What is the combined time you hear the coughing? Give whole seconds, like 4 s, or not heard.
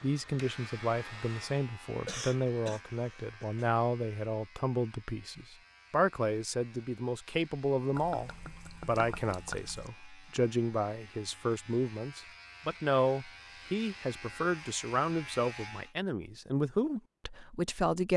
2 s.